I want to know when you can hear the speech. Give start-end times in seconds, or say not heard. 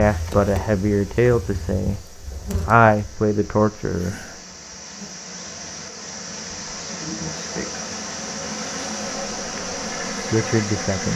0.0-4.2, 10.1-11.1.